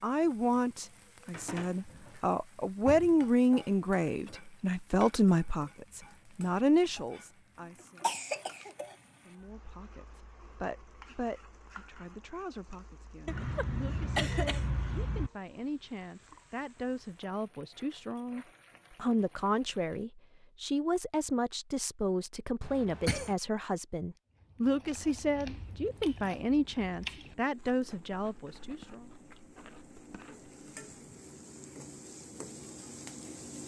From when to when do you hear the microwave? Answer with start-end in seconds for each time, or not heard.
not heard.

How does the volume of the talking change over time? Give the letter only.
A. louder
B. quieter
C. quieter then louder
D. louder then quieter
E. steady
C.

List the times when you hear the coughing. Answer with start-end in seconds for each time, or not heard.
8.0-8.8, 13.2-15.3, 22.6-23.4.